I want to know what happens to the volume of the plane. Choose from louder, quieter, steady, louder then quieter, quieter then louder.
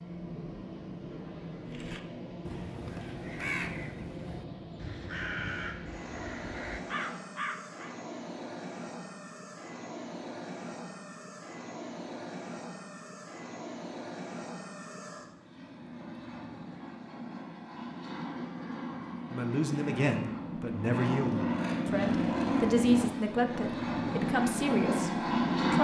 louder.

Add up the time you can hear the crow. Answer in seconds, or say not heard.
6 s.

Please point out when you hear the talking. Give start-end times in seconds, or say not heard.
19.3-25.7.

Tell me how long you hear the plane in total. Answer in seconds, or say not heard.
26 s.